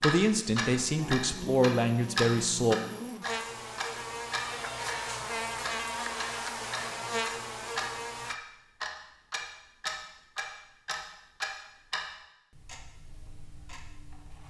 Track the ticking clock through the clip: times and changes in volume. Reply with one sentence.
You can hear the ticking clock from 0.0 to 14.4 s, getting quieter.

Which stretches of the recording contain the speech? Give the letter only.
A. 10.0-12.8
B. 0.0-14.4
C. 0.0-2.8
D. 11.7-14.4
C.